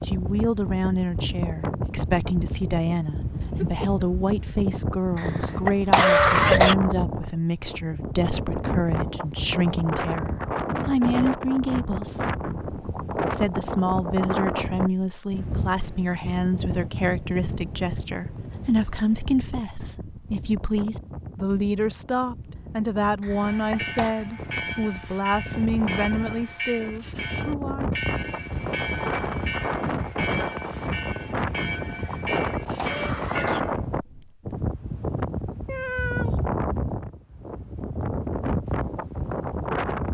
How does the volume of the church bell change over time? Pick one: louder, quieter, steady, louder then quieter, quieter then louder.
steady.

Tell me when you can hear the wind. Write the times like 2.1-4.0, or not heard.
0.0-40.0.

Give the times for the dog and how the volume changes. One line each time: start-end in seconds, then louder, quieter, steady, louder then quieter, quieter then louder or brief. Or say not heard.
not heard.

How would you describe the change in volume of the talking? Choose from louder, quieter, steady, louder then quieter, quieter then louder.
steady.